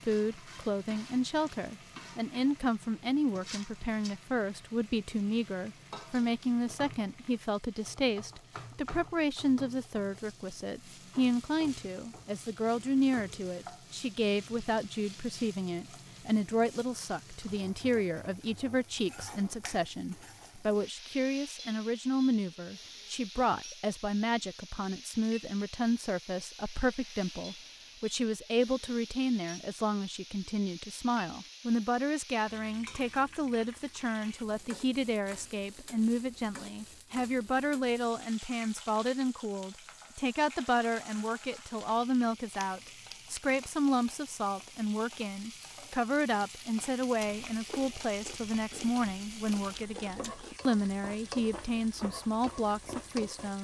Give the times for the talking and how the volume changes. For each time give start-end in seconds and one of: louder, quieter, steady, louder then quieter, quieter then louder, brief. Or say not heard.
0.1-53.5 steady.